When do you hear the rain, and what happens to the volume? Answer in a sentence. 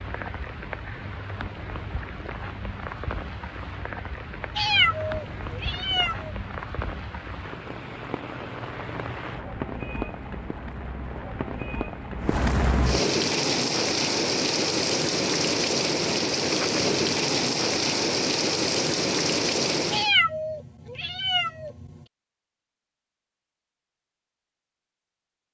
The rain can be heard from 0.0 to 20.1 s, getting louder.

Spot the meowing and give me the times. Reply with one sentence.
The meowing can be heard from 4.5 to 6.3 s and from 19.9 to 21.9 s.